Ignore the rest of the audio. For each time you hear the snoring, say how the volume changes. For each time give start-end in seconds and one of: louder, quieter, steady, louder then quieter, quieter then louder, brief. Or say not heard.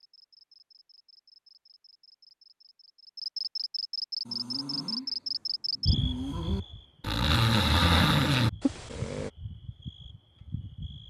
4.2-9.3 louder.